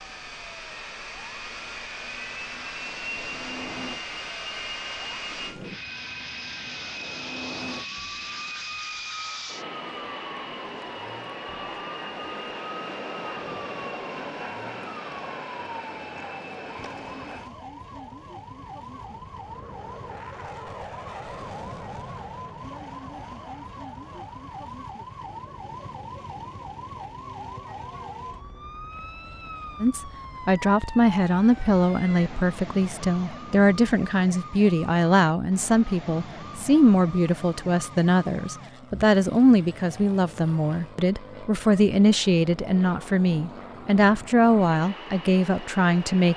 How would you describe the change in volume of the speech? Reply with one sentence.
The loudness of the speech stays about the same.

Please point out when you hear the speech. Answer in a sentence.
The speech can be heard from 29.8 to 46.3 s.